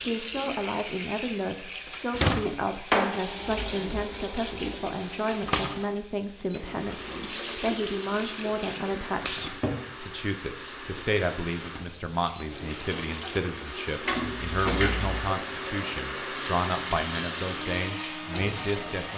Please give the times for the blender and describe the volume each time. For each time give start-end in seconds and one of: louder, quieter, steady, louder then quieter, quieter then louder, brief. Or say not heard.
3.0-19.1 louder.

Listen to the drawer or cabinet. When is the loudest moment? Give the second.
3 s.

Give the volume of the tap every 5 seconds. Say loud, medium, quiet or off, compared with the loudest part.
loud, loud, medium, loud.